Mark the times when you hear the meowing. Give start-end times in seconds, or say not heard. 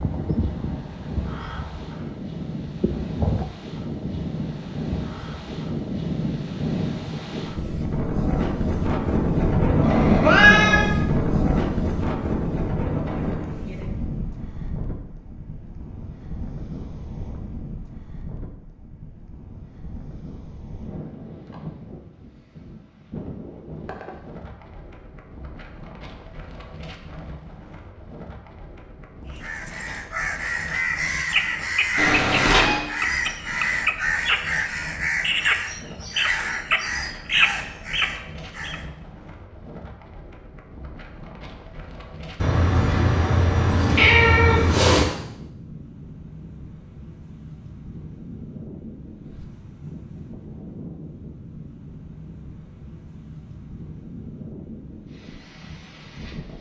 9.8-10.9, 31.9-32.8, 42.4-45.1.